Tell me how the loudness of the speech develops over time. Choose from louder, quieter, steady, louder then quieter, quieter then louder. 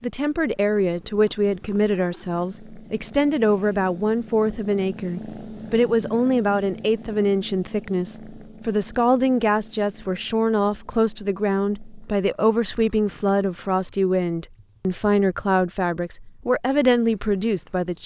steady.